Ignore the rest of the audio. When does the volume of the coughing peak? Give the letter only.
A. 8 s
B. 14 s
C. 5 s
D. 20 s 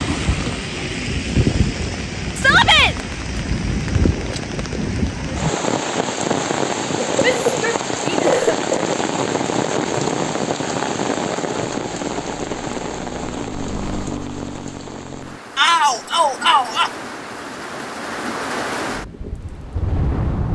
A.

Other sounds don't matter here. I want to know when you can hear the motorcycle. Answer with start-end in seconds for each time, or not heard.
11.8-15.4.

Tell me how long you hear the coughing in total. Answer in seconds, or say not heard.
2 s.